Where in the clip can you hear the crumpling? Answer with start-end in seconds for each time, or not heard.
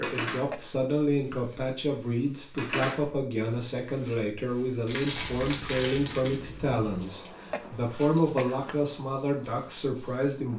4.8-6.4.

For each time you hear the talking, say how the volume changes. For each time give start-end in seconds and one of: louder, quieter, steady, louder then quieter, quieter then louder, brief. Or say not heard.
0.0-10.5 steady.